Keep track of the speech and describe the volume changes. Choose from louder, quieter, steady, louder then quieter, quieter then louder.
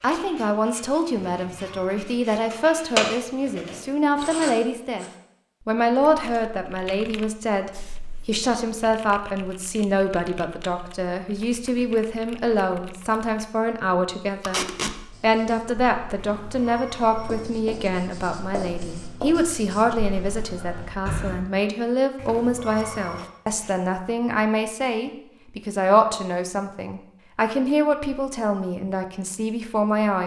steady.